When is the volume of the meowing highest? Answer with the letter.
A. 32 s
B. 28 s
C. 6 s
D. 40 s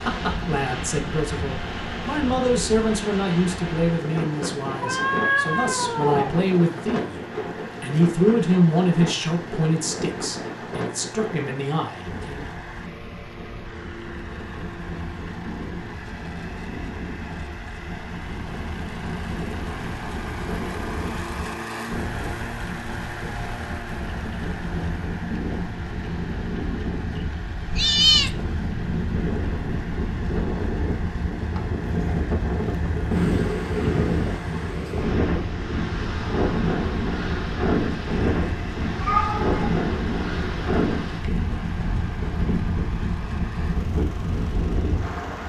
B.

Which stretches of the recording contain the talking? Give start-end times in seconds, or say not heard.
0.0-7.2, 7.8-12.6.